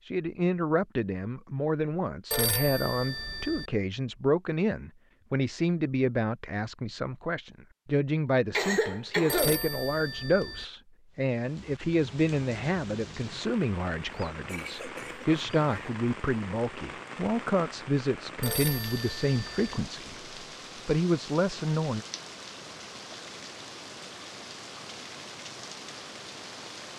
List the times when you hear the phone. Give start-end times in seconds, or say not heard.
2.3-3.7, 9.2-10.7, 18.4-19.8.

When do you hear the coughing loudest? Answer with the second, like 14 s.
9 s.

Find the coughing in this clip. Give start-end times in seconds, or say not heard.
8.5-9.6, 14.1-15.9.